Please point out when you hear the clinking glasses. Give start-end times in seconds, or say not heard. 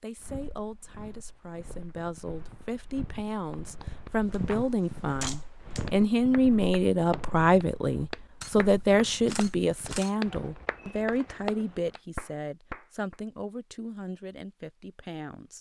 not heard.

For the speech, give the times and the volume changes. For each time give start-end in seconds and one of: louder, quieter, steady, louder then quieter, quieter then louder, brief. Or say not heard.
0.0-15.5 louder then quieter.